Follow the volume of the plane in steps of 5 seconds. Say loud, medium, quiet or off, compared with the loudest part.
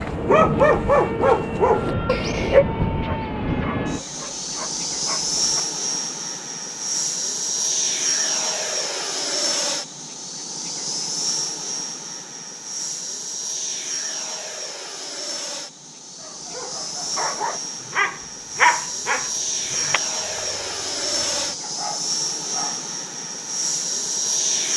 loud, loud, medium, medium, loud.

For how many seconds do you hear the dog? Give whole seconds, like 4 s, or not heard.
12 s.